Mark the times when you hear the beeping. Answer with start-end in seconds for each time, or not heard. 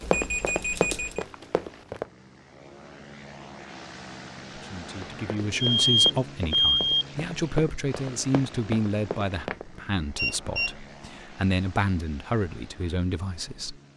0.0-1.2, 5.6-7.0, 10.2-10.8.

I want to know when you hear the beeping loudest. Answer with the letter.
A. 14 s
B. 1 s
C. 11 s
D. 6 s
D.